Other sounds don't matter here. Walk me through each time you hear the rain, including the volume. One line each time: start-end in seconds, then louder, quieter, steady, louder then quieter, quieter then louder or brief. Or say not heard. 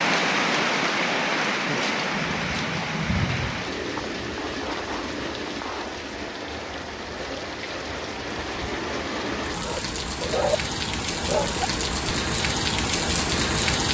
0.0-13.9 quieter then louder.